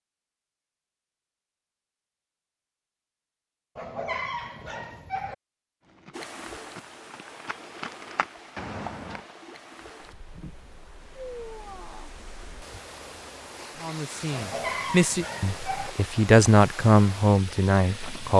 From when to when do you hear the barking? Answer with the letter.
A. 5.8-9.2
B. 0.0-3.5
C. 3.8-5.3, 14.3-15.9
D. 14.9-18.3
C.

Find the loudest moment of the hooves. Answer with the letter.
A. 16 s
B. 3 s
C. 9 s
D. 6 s
C.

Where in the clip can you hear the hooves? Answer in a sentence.
The hooves can be heard from 5.8 to 9.2 s.